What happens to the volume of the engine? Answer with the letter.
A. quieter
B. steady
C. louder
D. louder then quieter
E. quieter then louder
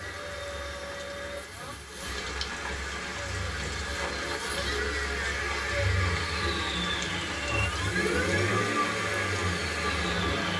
C.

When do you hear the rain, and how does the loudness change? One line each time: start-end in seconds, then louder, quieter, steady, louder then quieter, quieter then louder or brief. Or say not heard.
0.0-10.5 louder.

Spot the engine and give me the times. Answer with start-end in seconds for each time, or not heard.
0.0-10.5.